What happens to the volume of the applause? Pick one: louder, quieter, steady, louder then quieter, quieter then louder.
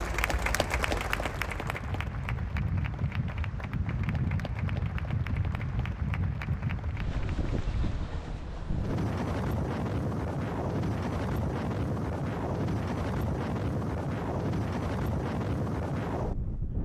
quieter.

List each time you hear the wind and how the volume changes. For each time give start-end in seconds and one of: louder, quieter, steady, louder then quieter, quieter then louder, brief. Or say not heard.
0.2-16.8 louder.